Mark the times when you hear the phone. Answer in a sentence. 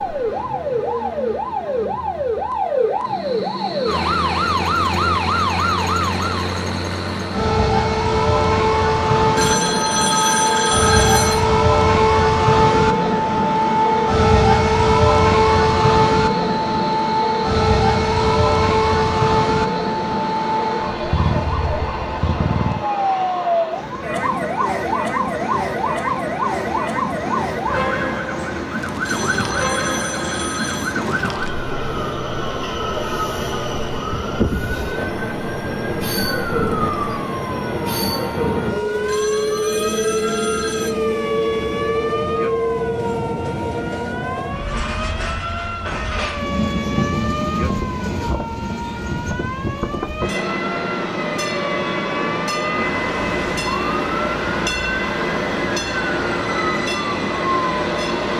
The phone can be heard from 9.3 to 11.4 s, from 29.1 to 31.0 s and from 39.0 to 41.0 s.